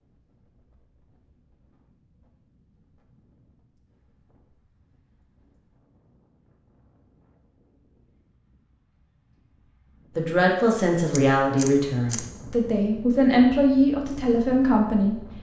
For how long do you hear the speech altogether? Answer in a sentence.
The speech can be heard for 5 seconds in total.